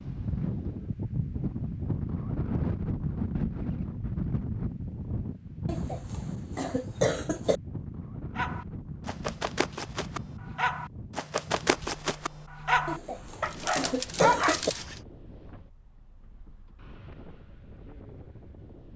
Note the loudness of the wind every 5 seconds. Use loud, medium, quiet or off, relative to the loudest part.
loud, medium, quiet, quiet.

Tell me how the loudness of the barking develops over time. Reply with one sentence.
The volume of the barking goes up.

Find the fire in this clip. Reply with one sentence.
You can't hear the fire here.